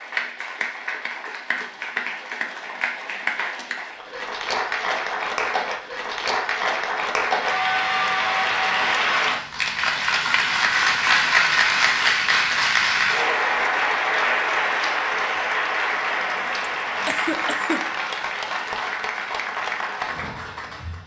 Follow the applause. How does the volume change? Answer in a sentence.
The loudness of the applause goes up, then down.